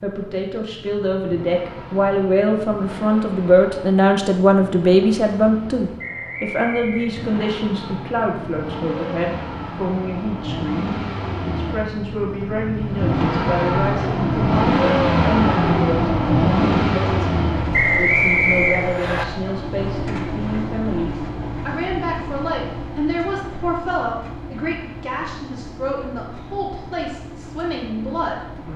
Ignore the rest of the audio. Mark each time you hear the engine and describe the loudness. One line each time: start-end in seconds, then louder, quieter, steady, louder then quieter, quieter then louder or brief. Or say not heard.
0.0-28.7 louder then quieter.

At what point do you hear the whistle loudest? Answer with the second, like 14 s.
18 s.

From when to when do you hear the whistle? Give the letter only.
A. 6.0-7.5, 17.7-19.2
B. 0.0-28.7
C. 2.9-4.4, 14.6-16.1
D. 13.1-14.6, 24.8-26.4
A.